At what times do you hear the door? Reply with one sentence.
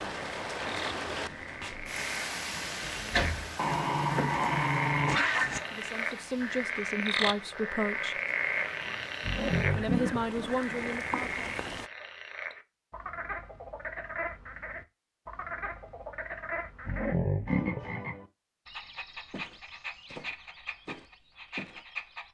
You can hear the door from 2.5 to 3.5 s.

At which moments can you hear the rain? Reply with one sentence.
The rain can be heard from 0.0 to 11.9 s.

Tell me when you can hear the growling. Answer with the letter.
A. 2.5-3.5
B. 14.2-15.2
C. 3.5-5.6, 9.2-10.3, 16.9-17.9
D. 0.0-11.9
C.